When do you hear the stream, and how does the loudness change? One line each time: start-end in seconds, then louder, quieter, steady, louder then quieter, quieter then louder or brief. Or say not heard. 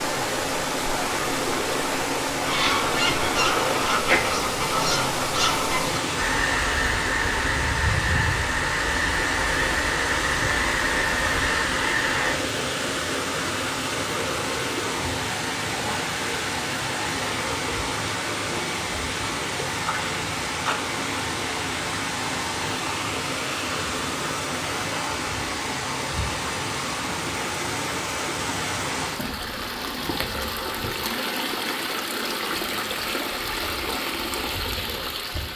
0.0-35.5 steady.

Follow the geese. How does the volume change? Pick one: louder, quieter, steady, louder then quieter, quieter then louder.
steady.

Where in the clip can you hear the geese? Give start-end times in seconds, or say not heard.
2.4-12.3.